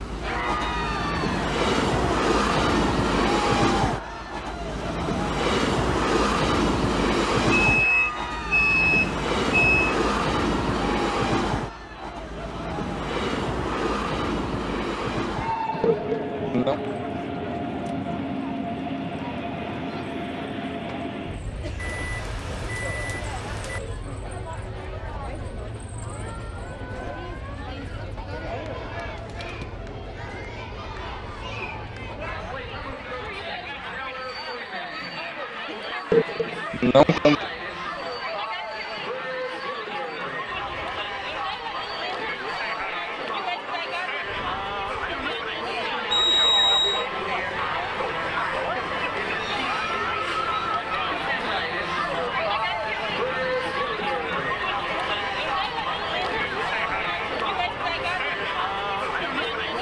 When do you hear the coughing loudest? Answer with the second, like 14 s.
37 s.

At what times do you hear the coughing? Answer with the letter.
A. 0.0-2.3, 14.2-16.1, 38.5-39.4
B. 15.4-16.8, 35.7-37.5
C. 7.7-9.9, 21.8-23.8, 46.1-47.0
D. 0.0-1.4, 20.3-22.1
B.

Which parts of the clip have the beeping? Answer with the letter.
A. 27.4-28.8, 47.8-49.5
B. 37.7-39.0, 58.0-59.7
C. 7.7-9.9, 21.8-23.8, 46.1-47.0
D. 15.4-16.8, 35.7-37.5
C.